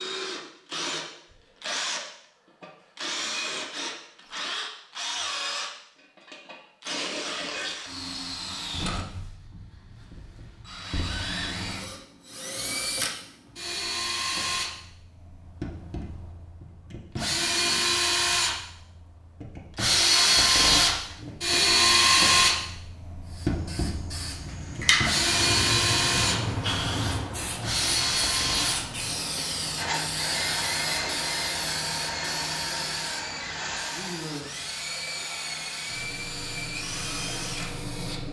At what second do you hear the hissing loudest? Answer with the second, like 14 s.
25 s.